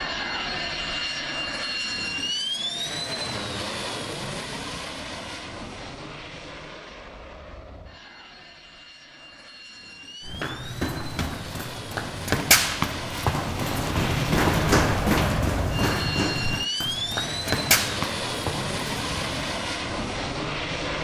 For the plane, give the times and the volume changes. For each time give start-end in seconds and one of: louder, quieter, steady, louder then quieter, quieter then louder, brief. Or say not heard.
0.0-20.9 quieter then louder.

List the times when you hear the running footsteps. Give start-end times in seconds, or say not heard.
10.2-19.6.